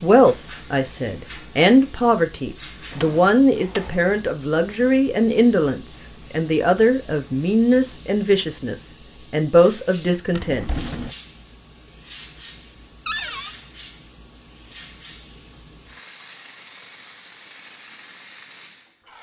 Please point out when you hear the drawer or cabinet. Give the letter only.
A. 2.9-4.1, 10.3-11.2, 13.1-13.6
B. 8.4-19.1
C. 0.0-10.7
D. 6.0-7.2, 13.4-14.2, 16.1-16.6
A.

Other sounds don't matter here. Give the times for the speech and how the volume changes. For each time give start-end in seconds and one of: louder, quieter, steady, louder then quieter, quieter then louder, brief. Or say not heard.
0.0-10.7 steady.